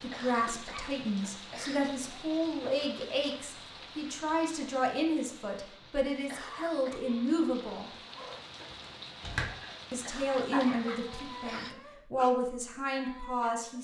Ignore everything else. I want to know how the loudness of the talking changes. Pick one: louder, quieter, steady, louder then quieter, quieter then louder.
steady.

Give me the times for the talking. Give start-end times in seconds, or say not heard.
0.0-7.9, 9.9-13.7.